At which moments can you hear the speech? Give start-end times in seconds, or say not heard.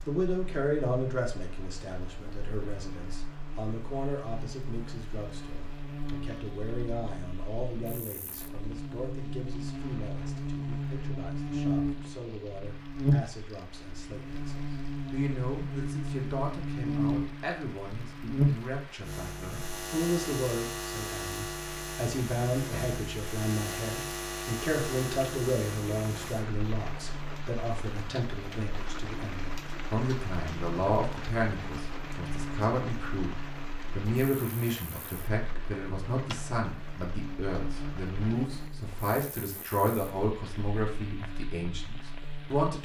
0.0-42.8.